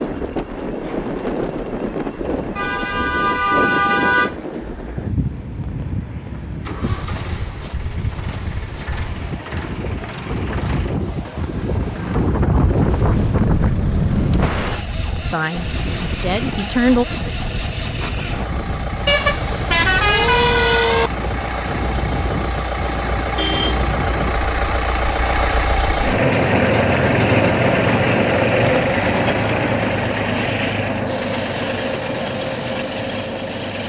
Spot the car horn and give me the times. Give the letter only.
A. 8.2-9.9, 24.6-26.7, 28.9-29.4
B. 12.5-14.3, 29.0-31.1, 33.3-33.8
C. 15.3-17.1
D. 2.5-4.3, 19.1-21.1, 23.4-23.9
D.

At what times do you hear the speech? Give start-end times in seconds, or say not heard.
15.3-17.1.